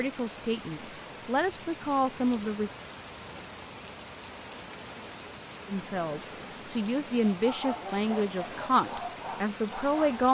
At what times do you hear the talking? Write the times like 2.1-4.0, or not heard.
0.0-2.7, 5.7-10.3.